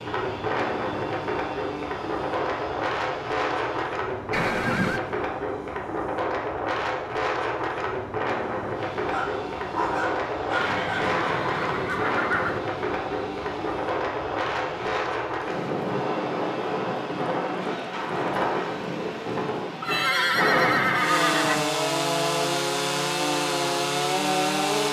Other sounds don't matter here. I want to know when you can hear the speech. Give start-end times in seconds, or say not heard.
not heard.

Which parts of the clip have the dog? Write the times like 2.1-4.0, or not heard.
9.1-11.1.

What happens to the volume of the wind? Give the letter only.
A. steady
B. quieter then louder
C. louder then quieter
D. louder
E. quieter
A.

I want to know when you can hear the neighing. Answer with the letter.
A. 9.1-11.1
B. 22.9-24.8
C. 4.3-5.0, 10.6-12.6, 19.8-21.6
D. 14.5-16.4
C.